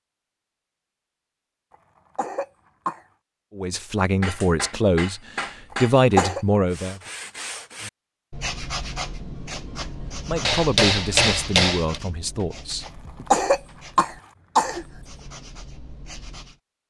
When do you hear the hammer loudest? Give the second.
11 s.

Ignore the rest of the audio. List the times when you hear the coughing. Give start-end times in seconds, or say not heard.
2.1-3.0, 5.7-6.5, 13.3-14.8.